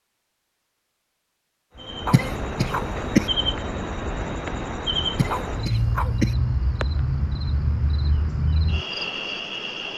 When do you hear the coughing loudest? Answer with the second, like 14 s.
3 s.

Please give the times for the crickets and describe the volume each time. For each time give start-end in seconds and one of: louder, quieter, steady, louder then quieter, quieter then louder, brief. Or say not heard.
1.8-9.9 steady.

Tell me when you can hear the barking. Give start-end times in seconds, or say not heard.
2.0-2.9, 5.3-6.2.